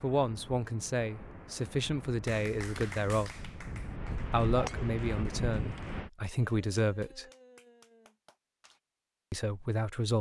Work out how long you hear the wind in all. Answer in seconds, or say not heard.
6 s.